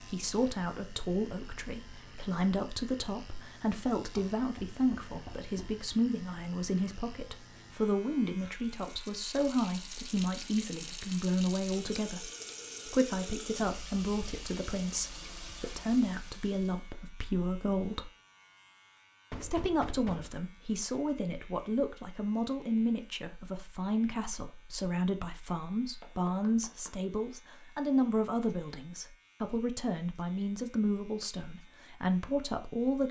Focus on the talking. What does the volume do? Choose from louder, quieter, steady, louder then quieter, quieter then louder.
steady.